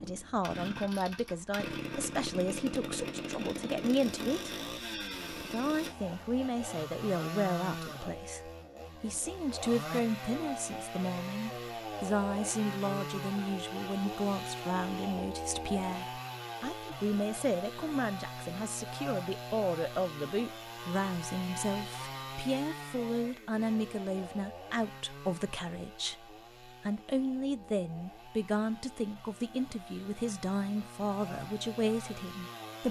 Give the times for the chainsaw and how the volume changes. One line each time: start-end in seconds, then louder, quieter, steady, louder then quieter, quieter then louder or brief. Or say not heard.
0.0-32.8 quieter.